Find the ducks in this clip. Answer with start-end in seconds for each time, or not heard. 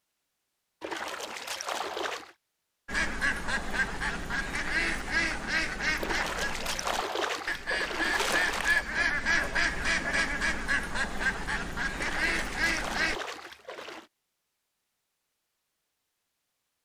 2.9-13.2.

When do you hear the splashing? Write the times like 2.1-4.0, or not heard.
0.8-2.4, 6.0-8.8, 11.9-14.1.